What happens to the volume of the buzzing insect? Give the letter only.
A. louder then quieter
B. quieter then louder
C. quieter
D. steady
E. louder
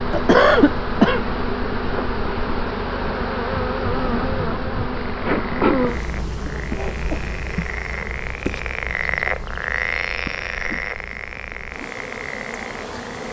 C.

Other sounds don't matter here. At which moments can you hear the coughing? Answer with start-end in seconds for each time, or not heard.
0.1-1.2, 6.5-7.2, 10.2-10.8.